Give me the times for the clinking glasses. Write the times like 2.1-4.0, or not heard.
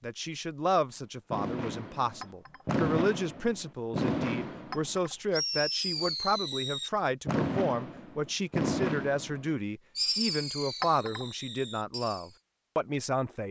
2.2-2.6, 4.7-5.2, 10.8-11.2.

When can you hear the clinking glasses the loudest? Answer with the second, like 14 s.
11 s.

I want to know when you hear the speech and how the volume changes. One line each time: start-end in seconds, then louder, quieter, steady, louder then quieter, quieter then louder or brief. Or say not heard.
0.0-13.4 steady.